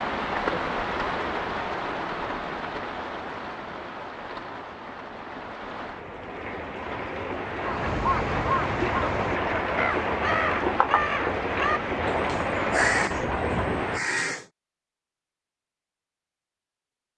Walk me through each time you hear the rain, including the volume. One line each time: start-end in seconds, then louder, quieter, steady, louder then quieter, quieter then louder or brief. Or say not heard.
0.0-14.0 quieter then louder.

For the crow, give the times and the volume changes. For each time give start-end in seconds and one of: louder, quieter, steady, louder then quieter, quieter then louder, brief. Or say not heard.
7.7-14.4 steady.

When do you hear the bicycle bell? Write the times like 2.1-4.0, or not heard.
not heard.